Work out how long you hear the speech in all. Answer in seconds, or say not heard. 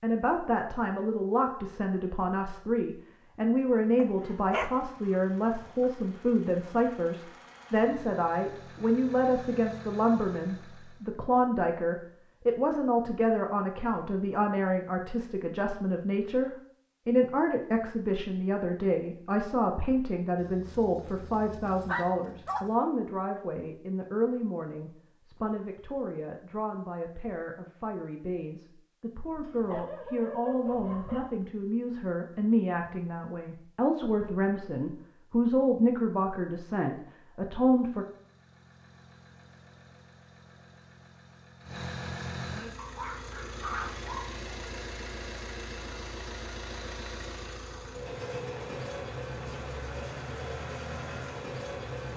38 s.